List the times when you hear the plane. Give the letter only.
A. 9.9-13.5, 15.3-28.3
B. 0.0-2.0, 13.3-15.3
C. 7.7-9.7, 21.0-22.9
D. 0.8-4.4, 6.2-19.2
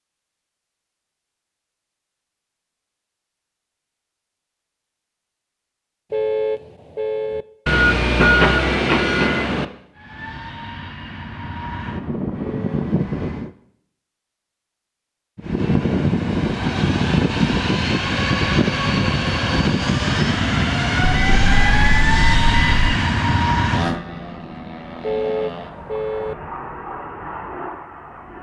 A.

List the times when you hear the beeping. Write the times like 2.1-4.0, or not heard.
7.7-9.7, 21.0-22.9.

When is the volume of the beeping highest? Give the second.
8 s.